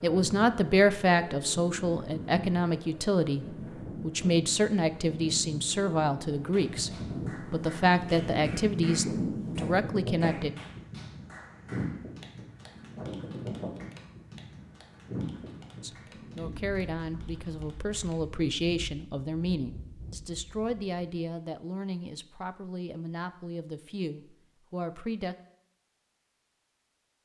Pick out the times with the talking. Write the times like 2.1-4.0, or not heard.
0.0-6.9, 7.5-10.5, 15.8-25.4.